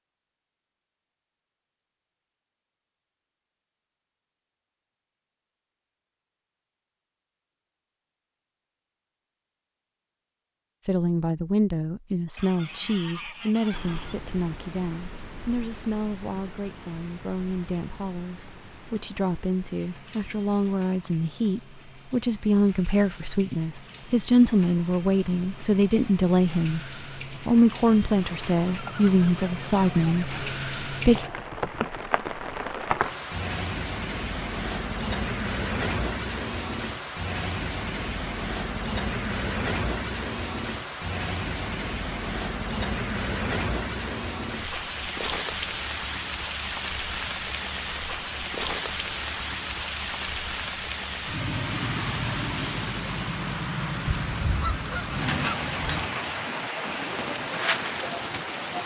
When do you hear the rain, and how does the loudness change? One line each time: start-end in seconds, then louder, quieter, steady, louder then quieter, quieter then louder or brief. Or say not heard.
13.7-58.8 louder.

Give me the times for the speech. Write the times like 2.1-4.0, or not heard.
10.8-31.2.